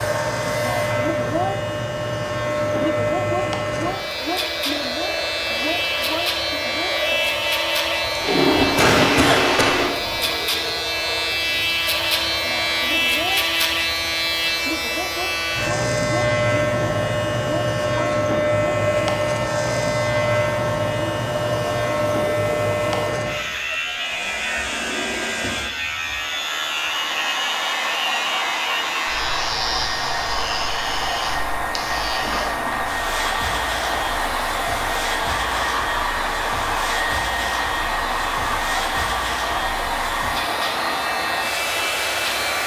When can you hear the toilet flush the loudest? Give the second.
9 s.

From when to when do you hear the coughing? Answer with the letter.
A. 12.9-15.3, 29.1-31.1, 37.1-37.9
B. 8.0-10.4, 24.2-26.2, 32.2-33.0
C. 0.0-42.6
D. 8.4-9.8
D.